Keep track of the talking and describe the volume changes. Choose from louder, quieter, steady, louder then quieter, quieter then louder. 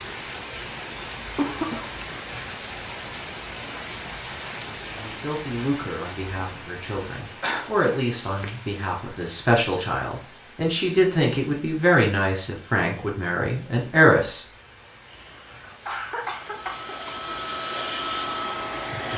louder.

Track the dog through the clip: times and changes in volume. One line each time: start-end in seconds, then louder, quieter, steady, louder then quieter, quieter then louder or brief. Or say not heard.
not heard.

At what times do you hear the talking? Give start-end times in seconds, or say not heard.
4.8-14.4.